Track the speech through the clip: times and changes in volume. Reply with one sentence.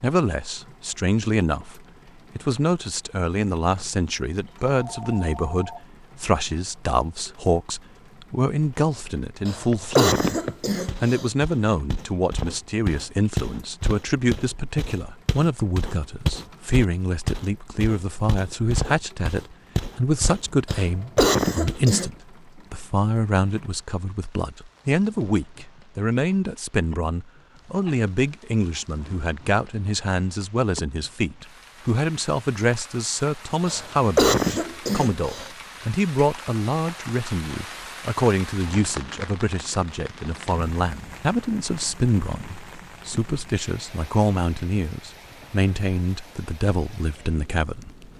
The speech can be heard from 0.0 to 10.2 s, at a steady volume; and from 11.0 to 48.1 s, at a steady volume.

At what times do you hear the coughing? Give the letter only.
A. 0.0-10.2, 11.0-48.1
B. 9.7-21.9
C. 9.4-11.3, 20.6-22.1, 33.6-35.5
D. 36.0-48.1
C.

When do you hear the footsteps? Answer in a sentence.
The footsteps can be heard from 9.7 to 21.9 s.